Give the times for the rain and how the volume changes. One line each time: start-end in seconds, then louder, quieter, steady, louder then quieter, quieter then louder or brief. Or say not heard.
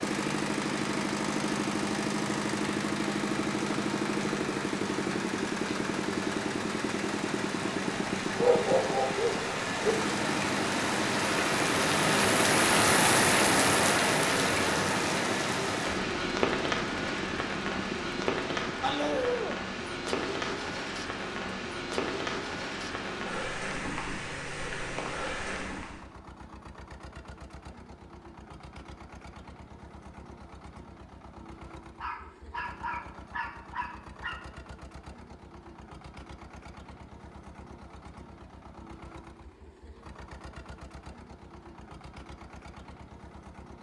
0.0-26.1 louder then quieter.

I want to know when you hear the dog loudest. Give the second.
9 s.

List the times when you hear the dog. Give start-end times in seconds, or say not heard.
8.3-9.9, 18.8-19.6, 32.0-34.4.